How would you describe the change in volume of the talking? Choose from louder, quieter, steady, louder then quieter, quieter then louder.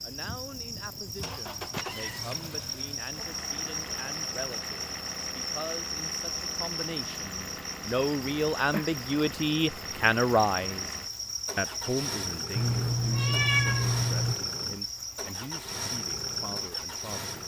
louder then quieter.